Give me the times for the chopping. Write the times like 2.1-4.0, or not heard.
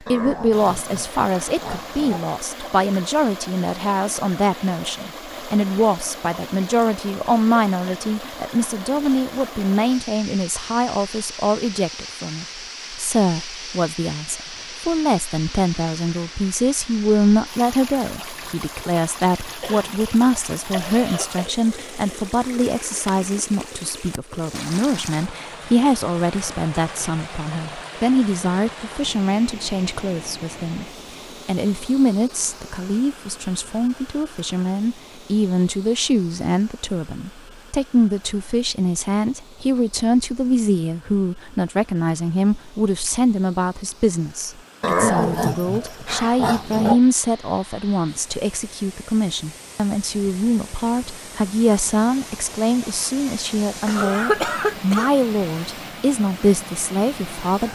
not heard.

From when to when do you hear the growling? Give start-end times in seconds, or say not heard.
0.1-2.3, 44.8-47.0.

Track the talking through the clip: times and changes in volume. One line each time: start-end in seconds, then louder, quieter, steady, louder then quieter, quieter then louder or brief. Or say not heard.
0.1-30.9 steady
31.4-57.7 steady.